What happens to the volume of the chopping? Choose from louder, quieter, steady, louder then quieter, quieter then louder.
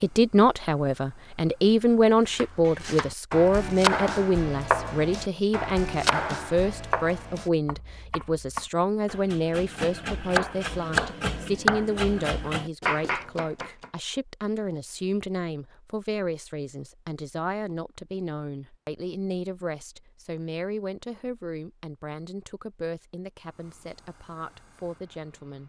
quieter then louder.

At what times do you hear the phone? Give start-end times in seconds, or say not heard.
not heard.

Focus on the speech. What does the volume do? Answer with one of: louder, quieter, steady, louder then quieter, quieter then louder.
quieter.